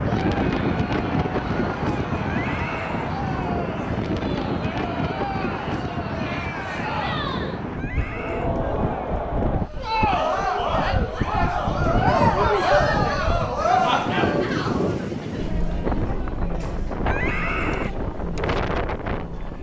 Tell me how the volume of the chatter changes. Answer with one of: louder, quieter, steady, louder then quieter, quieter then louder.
louder then quieter.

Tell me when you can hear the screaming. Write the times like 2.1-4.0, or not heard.
2.2-3.1, 7.8-8.6, 17.1-17.9.